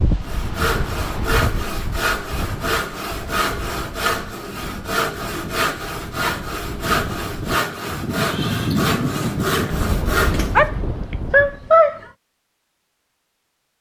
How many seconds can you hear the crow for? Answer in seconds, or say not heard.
not heard.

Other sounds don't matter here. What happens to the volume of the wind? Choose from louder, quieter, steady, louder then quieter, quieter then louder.
quieter then louder.